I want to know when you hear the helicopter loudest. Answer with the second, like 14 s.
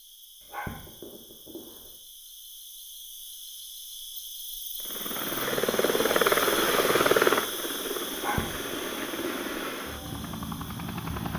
7 s.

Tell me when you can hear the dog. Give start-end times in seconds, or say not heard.
0.4-1.9, 8.1-9.6.